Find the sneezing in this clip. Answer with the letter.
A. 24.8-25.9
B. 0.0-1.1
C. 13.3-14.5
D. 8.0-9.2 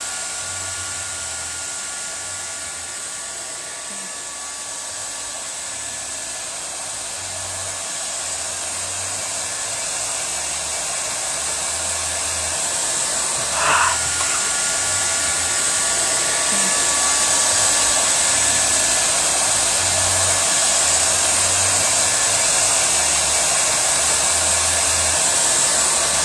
C.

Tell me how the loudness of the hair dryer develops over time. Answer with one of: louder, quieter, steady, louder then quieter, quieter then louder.
louder.